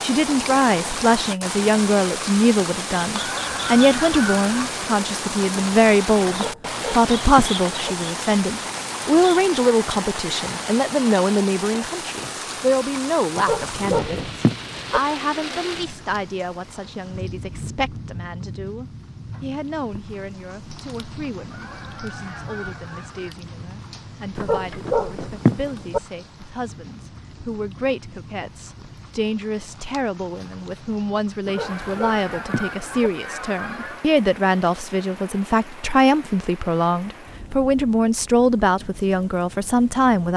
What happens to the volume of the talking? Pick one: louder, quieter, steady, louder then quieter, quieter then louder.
quieter then louder.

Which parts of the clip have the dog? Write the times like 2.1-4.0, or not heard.
6.3-8.0, 13.3-15.0, 24.4-26.0, 31.4-33.1.